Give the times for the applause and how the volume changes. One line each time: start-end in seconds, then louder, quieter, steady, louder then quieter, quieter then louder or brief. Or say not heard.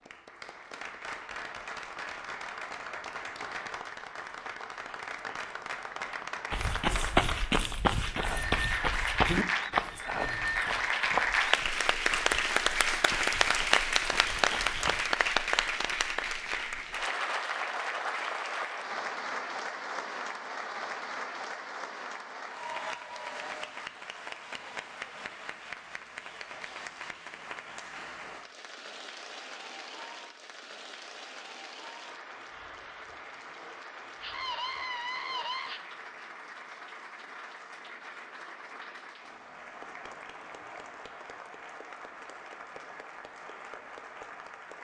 0.0-44.7 louder then quieter.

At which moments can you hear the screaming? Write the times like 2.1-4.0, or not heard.
34.2-35.8.